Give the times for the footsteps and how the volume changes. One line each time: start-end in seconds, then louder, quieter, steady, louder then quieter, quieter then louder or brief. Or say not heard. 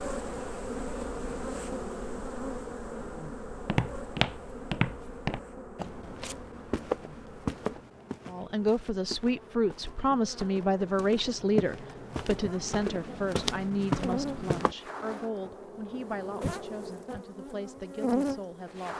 3.5-14.8 quieter then louder.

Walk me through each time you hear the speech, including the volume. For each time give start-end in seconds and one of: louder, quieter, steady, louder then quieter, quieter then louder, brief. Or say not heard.
8.2-18.9 quieter.